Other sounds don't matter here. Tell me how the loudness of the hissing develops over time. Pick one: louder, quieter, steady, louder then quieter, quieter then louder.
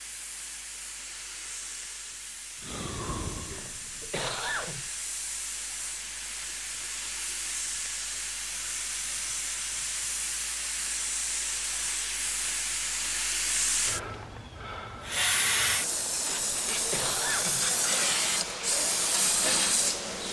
louder.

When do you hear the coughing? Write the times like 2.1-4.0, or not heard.
3.5-4.9, 16.2-17.7.